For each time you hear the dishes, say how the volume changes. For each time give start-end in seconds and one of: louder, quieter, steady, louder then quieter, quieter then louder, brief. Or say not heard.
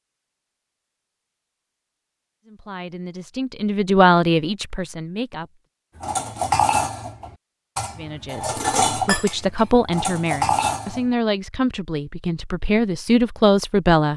6.0-11.2 quieter then louder.